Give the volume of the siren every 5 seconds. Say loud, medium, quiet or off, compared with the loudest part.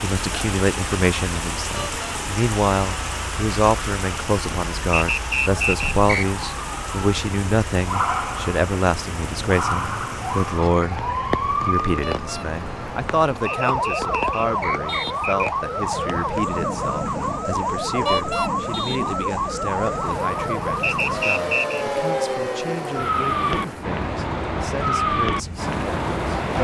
quiet, medium, loud, loud, loud, loud.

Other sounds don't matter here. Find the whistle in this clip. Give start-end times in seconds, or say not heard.
4.9-6.2, 13.7-15.5, 20.8-21.9.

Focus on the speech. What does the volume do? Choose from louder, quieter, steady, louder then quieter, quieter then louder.
quieter.